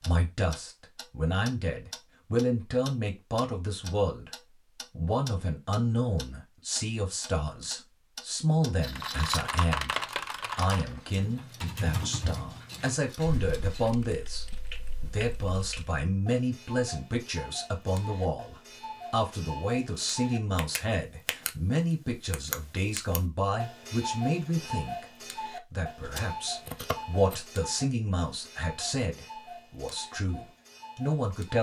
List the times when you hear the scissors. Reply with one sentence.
You can hear the scissors from 8.8 to 9.6 s and from 26.0 to 27.4 s.